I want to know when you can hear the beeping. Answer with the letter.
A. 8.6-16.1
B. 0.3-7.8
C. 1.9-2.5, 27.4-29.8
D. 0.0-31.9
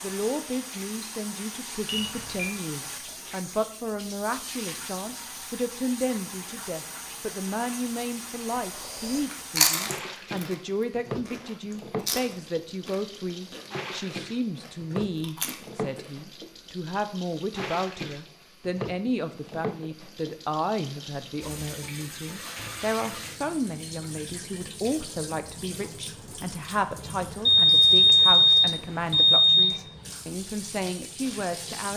C.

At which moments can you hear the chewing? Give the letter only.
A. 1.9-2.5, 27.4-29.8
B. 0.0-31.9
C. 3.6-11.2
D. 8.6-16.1
D.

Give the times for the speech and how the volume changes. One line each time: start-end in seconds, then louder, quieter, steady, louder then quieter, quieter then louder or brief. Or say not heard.
0.0-31.9 steady.